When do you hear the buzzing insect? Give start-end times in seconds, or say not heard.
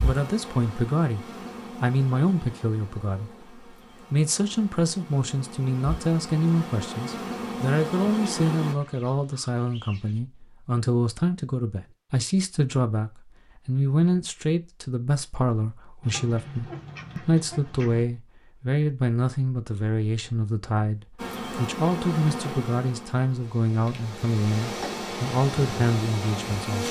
0.0-8.8, 21.1-26.8.